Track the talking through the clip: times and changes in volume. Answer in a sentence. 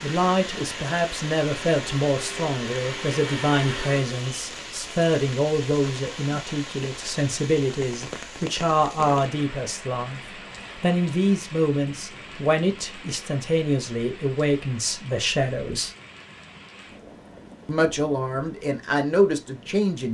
You can hear the talking from 0.0 to 15.9 s, at a steady volume; and briefly from 17.6 to 20.0 s.